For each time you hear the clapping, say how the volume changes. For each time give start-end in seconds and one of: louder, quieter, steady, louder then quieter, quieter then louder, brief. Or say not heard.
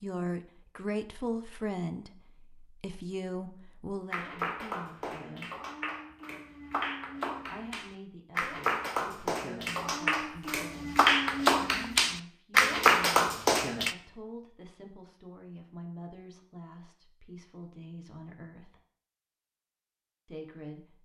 4.1-13.9 louder.